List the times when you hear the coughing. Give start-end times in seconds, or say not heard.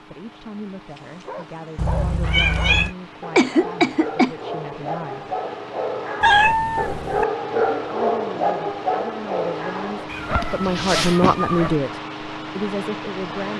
3.4-4.3, 10.4-11.3.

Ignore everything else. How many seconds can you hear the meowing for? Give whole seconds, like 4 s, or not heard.
4 s.